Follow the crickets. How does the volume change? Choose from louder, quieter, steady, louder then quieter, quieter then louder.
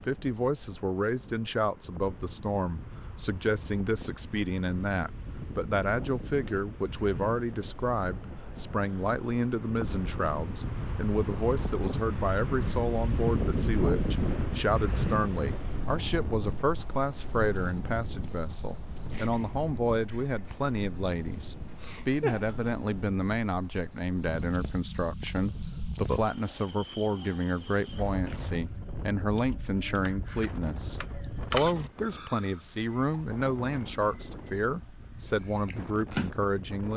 louder.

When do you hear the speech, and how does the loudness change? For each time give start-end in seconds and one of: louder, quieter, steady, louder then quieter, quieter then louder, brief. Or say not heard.
0.0-36.9 steady.